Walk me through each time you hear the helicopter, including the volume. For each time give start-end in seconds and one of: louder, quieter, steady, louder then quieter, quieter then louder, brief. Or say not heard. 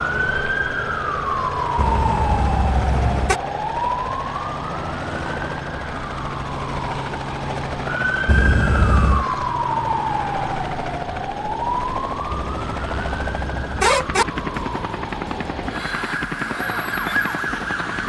0.0-18.0 steady.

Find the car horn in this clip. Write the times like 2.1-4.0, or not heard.
1.8-3.4, 8.2-9.2, 12.3-14.2.